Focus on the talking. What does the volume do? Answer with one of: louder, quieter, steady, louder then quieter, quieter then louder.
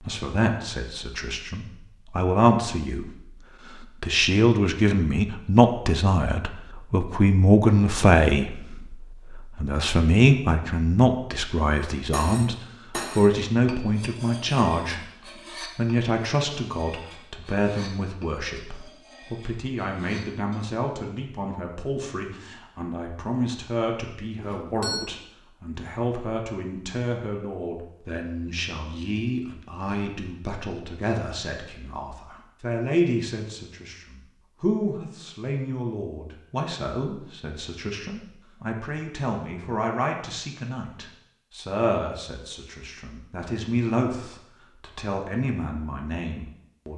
quieter.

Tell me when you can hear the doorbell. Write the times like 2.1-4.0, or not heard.
24.4-25.1.